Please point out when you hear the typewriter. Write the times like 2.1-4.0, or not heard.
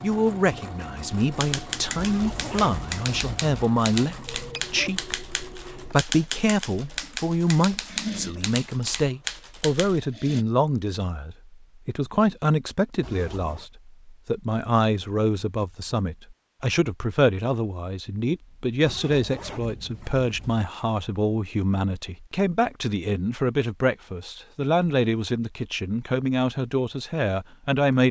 1.1-10.0.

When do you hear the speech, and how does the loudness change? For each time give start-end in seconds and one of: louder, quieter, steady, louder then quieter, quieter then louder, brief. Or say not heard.
0.0-28.0 steady.